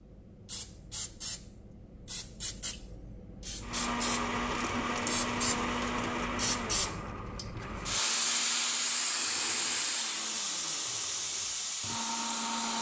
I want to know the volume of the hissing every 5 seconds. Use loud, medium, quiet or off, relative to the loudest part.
medium, loud, loud.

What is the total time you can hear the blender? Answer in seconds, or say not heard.
9 s.